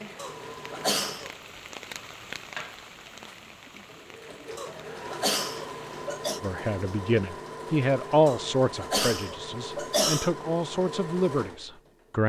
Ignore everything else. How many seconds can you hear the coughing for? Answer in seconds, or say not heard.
5 s.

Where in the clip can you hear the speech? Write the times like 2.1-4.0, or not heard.
6.4-12.2.